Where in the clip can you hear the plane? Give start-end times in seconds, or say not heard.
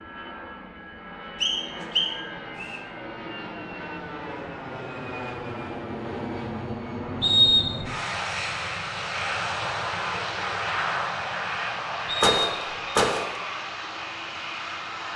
0.0-15.1.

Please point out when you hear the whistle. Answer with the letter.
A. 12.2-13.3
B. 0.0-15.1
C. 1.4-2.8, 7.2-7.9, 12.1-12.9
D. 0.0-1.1
C.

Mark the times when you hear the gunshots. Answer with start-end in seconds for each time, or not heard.
12.2-13.3.